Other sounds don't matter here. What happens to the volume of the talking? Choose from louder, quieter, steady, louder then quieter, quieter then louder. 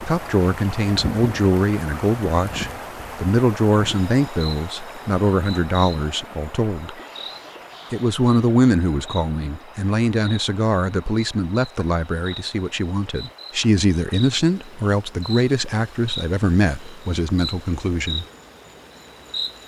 steady.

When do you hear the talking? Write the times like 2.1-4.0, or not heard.
0.0-7.0, 7.9-18.2.